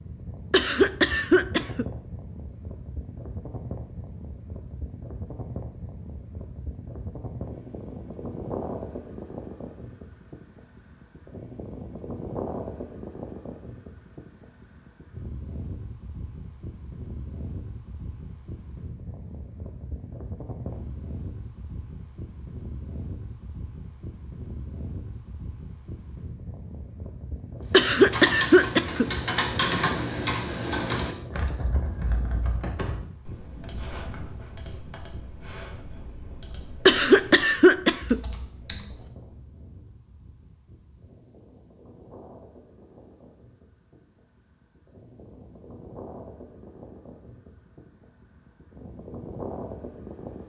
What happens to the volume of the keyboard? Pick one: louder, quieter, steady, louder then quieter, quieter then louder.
quieter.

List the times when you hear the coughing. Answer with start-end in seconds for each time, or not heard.
0.5-1.9, 27.7-29.1, 36.9-38.2.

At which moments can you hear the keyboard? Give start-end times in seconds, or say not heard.
27.7-39.1.